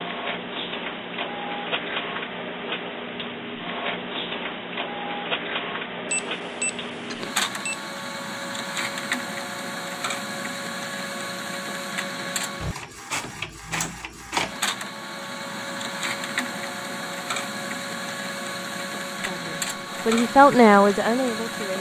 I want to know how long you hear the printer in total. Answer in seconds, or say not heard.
22 s.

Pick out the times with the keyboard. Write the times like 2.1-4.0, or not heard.
not heard.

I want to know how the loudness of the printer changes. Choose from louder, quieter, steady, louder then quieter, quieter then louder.
steady.